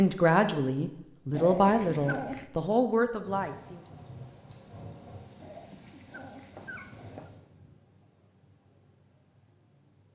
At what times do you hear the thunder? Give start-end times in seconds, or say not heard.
3.2-7.5.